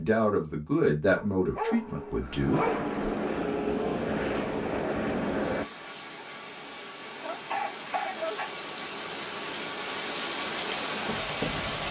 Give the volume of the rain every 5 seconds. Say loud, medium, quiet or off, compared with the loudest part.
quiet, medium, loud.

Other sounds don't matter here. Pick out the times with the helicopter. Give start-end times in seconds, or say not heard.
1.9-5.7.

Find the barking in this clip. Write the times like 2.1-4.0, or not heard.
1.1-2.9, 7.2-8.9.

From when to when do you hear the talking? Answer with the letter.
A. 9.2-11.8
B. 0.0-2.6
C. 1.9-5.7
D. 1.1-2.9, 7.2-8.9
B.